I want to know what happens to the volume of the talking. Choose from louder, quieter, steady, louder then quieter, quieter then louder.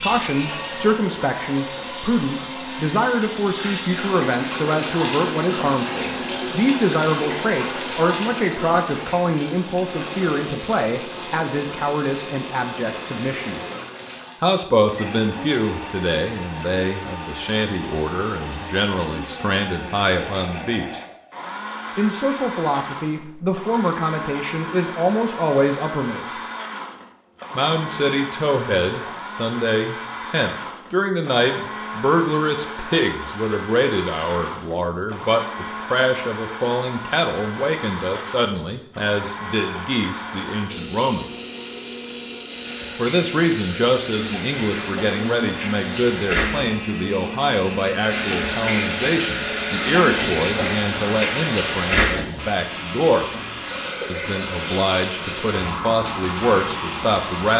steady.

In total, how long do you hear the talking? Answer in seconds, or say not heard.
52 s.